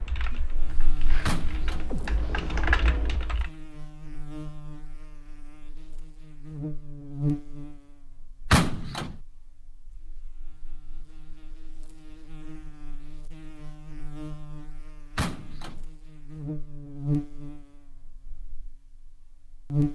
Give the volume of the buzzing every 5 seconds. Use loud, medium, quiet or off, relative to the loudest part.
medium, loud, quiet, loud.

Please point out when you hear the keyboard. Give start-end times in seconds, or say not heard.
0.0-3.5.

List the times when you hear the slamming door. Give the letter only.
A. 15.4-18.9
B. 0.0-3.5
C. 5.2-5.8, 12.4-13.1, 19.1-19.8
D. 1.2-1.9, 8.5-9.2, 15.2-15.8
D.